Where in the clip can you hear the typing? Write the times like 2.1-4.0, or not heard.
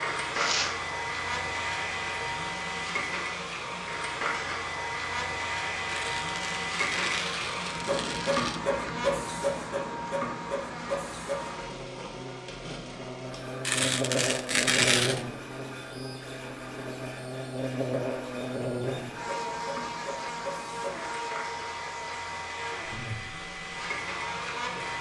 not heard.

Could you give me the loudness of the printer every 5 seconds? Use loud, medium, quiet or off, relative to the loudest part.
loud, loud, medium, medium, medium.